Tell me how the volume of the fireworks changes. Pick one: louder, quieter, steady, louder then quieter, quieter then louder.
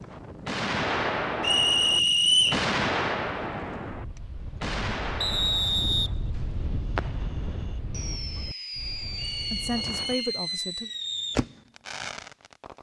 quieter then louder.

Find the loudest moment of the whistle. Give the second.
2 s.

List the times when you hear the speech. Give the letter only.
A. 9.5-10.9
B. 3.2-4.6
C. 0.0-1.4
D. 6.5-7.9
A.